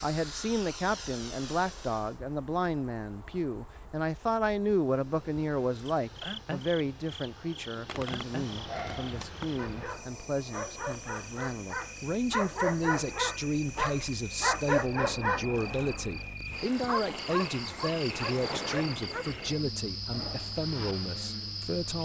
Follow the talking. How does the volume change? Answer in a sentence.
The volume of the talking stays about the same.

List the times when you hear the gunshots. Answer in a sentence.
You can hear the gunshots from 7.8 to 9.8 s.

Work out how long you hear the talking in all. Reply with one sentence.
You can hear the talking for 22 seconds altogether.